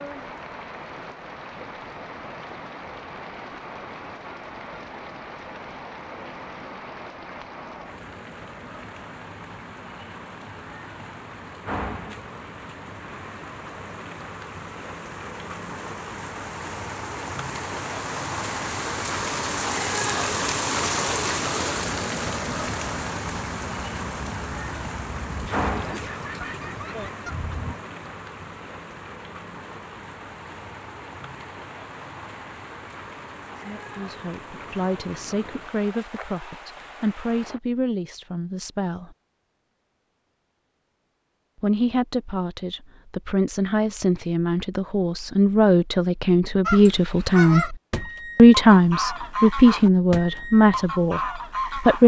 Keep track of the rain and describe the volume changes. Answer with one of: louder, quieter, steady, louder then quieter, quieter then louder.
louder then quieter.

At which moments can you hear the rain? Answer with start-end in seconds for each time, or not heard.
0.0-37.6.